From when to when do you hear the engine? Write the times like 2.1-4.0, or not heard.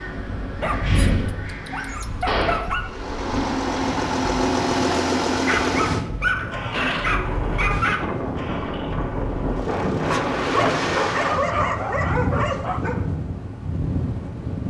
2.8-11.6.